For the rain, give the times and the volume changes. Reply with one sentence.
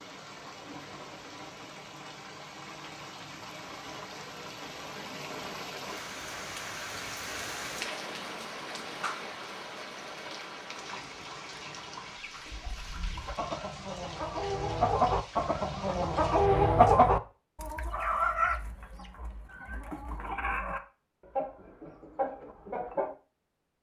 You can hear the rain from 0.0 to 16.5 s, getting louder then quieter.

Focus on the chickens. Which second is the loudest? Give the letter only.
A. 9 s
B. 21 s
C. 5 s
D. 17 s
D.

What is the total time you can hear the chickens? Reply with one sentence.
The chickens can be heard for 11 seconds in total.